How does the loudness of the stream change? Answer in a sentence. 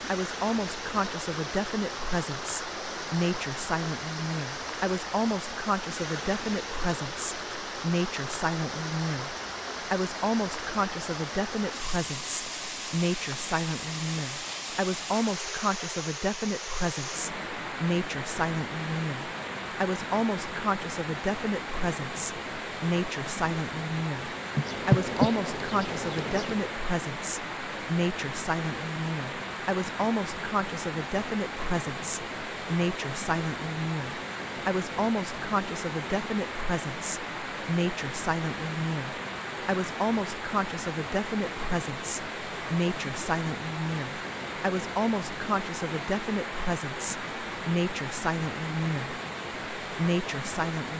The loudness of the stream stays about the same.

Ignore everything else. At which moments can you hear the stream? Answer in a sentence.
The stream can be heard from 0.0 to 50.9 s.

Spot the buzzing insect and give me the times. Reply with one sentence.
You can hear the buzzing insect from 24.4 to 26.8 s.